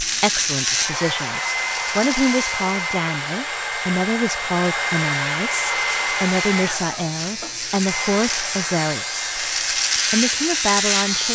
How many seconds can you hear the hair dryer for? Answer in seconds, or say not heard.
11 s.